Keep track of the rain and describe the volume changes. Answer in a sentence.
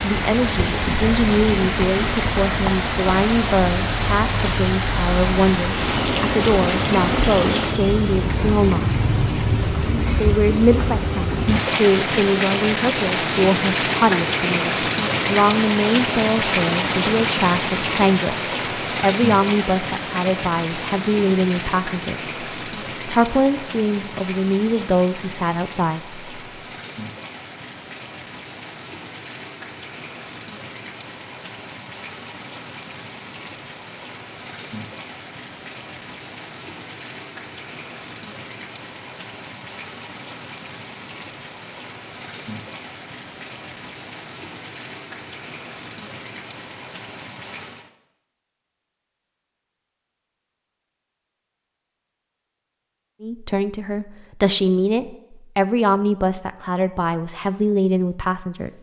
The loudness of the rain goes down.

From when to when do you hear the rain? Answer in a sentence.
The rain can be heard from 0.0 to 47.9 s.